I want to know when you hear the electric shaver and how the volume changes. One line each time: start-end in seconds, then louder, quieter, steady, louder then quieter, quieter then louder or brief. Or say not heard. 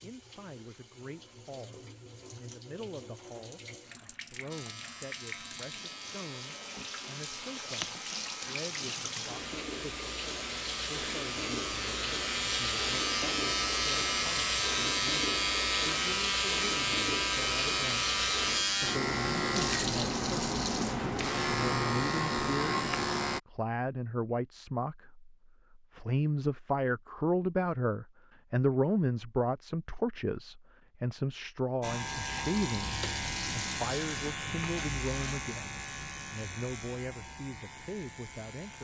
4.5-23.4 louder
31.8-38.7 quieter.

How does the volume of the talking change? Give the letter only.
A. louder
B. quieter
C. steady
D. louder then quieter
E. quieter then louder
D.